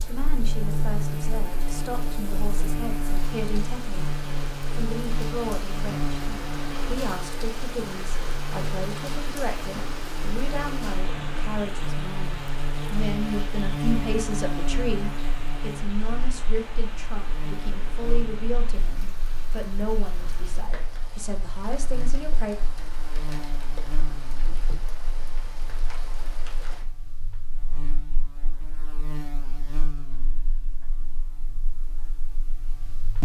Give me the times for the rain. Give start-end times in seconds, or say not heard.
0.0-26.9.